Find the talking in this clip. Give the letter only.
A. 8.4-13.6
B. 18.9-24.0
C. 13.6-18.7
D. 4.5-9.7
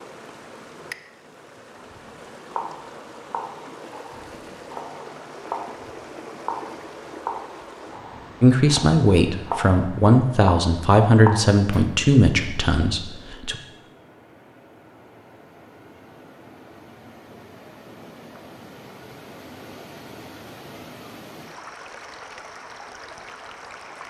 A.